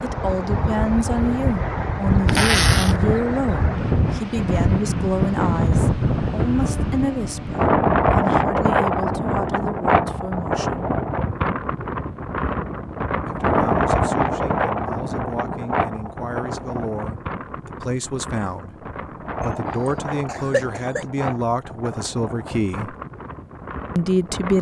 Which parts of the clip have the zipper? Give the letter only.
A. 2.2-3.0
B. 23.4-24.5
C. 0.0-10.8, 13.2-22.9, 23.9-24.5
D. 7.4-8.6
A.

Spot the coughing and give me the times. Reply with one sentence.
You can hear the coughing from 19.9 to 21.1 s.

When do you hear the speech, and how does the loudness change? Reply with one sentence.
You can hear the speech from 0.0 to 10.8 s, getting quieter; from 13.2 to 22.9 s, getting louder; and briefly from 23.9 to 24.5 s.